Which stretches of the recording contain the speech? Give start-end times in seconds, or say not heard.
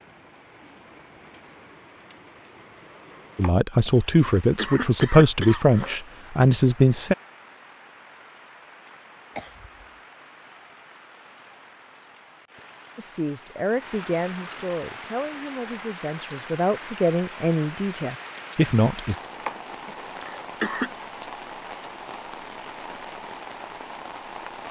3.4-7.2, 12.9-19.1.